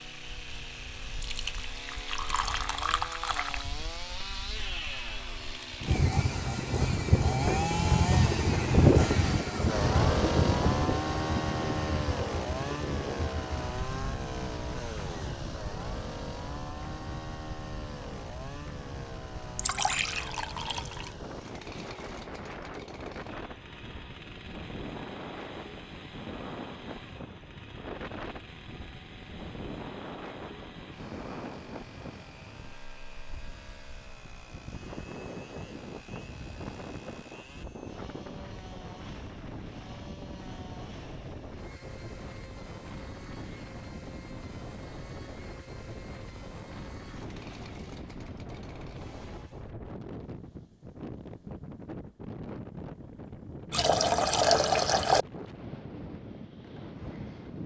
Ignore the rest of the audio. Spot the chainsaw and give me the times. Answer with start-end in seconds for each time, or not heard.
0.0-49.8.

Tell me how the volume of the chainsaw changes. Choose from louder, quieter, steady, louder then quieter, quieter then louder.
quieter.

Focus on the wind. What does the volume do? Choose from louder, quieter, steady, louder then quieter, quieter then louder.
quieter.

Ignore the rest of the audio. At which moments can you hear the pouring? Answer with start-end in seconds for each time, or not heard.
1.2-3.6, 19.6-21.1, 53.7-55.2.